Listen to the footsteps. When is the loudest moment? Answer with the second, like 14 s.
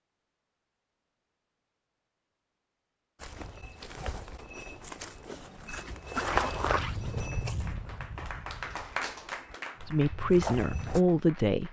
6 s.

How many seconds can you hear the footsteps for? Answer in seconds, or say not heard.
8 s.